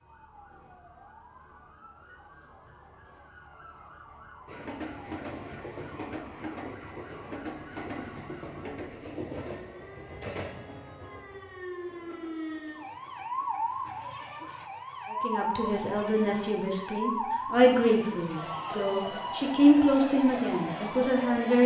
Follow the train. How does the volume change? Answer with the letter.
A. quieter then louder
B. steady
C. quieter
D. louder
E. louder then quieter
C.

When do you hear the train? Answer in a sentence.
You can hear the train from 4.5 to 14.1 s.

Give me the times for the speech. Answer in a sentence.
You can hear the speech from 15.1 to 21.6 s.